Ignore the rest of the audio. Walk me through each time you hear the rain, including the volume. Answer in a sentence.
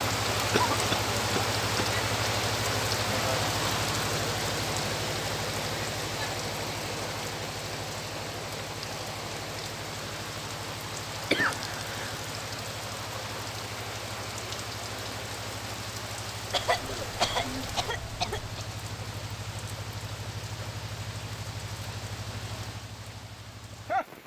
You can hear the rain from 0.0 to 24.2 s, getting quieter.